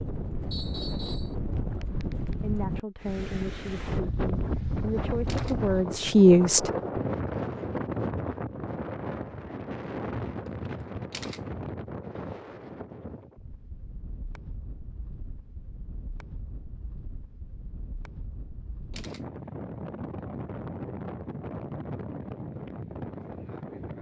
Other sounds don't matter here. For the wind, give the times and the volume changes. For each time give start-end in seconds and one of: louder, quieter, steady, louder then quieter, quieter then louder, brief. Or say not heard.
0.0-23.9 quieter then louder.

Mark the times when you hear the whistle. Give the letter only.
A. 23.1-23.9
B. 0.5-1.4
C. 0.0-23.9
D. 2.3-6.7
B.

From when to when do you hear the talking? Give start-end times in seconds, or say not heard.
2.3-6.7.